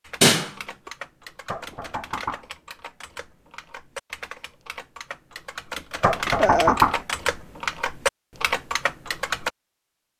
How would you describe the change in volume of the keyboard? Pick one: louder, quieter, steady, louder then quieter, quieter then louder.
louder.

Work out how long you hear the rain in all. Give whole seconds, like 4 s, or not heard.
not heard.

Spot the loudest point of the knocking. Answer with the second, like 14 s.
7 s.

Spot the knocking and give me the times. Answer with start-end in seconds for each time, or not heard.
1.4-2.5, 6.0-7.0.